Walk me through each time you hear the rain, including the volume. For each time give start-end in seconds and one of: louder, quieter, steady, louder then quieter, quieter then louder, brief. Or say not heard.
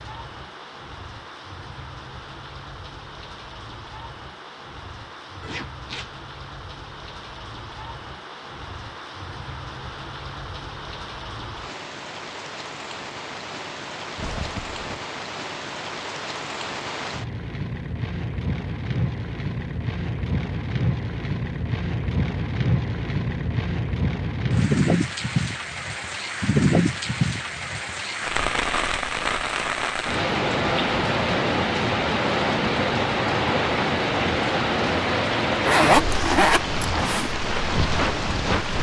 0.0-38.7 louder.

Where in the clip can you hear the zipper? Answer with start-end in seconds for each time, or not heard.
5.4-6.1, 14.2-15.1, 35.6-37.3.